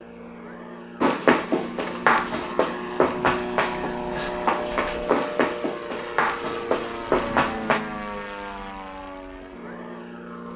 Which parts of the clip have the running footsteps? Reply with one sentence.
The running footsteps can be heard from 1.0 to 7.8 s.